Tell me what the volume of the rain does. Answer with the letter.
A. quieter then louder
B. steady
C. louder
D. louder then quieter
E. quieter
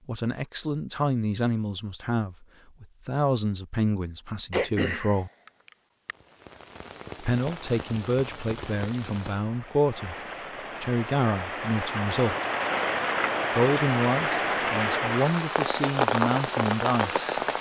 C.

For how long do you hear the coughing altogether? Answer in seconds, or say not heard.
2 s.